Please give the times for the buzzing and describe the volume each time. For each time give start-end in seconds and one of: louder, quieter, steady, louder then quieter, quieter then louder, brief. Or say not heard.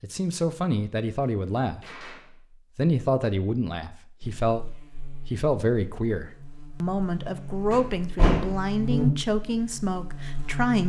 4.2-10.8 louder then quieter.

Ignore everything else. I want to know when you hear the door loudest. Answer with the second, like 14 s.
8 s.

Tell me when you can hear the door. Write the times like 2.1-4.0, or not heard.
1.8-2.3, 7.7-8.7.